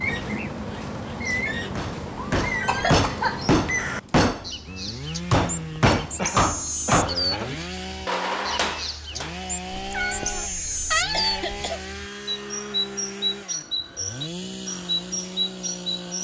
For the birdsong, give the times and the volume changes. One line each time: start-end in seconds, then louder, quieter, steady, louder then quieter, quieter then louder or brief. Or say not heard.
0.0-16.1 steady.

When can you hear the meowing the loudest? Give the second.
11 s.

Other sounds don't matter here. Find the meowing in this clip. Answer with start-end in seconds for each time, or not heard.
9.8-11.5.